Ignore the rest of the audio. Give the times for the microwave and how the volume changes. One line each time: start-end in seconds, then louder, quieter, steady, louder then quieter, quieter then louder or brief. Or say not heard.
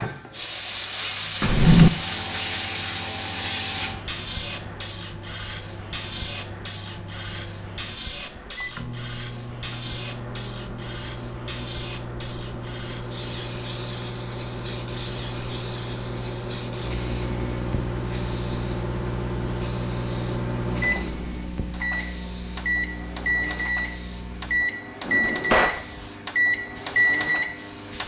0.0-28.0 louder.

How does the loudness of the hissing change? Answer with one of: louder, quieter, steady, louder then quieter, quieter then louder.
quieter.